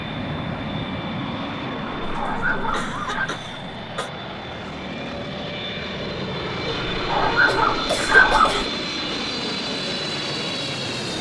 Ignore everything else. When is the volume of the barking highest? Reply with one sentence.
The volume of the barking peaks at 8 seconds.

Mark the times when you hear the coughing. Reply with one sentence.
You can hear the coughing from 2.0 to 4.1 s and from 7.5 to 8.7 s.